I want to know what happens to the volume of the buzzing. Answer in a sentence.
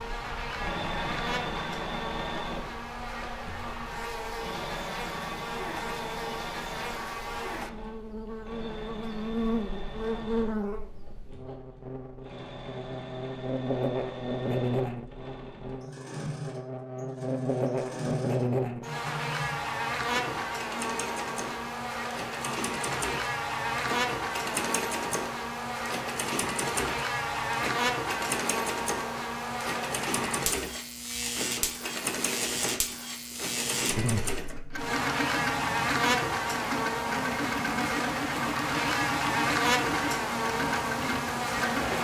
The loudness of the buzzing goes up.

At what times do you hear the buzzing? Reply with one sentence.
The buzzing can be heard from 0.0 to 42.0 s.